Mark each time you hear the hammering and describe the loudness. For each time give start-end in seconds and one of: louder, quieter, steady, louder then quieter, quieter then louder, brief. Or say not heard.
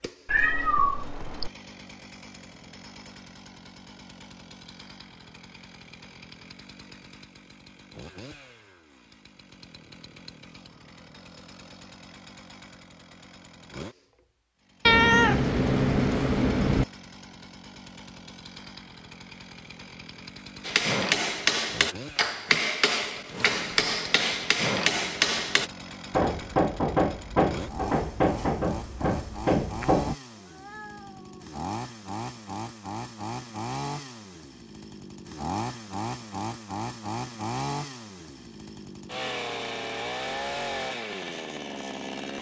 20.6-30.1 steady.